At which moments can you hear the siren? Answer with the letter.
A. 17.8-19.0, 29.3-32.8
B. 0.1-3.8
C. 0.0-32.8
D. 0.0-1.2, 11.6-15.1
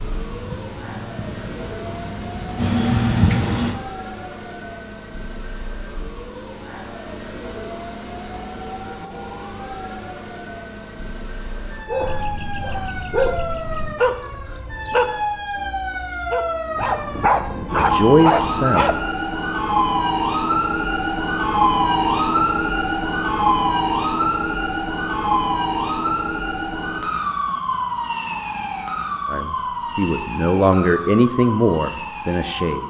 C.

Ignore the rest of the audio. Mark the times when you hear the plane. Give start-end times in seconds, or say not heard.
0.1-3.8.